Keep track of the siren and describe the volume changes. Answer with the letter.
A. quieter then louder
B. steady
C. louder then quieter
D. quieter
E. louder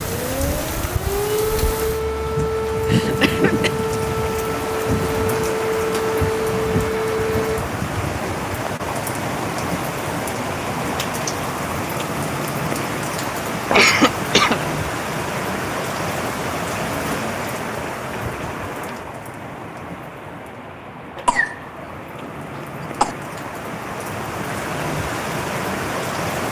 B.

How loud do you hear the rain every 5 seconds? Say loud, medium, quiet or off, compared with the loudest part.
loud, loud, loud, loud, medium, loud.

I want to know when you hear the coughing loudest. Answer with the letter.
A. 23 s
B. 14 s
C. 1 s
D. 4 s
B.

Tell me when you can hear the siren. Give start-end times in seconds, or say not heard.
0.0-7.6.